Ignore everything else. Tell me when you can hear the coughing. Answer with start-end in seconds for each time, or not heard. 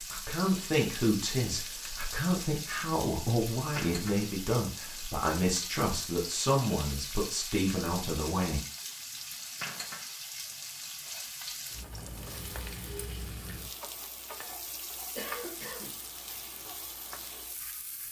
15.2-16.0.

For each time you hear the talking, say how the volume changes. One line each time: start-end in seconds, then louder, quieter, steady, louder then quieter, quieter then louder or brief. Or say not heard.
0.1-8.6 steady.